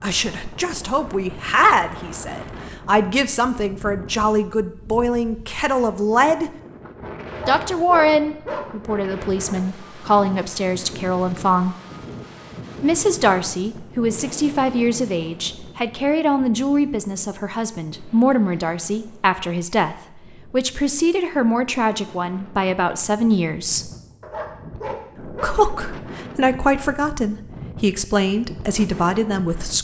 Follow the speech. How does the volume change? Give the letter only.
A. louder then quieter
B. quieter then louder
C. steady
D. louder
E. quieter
C.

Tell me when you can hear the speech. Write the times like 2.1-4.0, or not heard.
0.0-6.5, 7.5-11.8, 12.8-23.9, 25.2-29.8.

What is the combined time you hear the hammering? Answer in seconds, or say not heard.
not heard.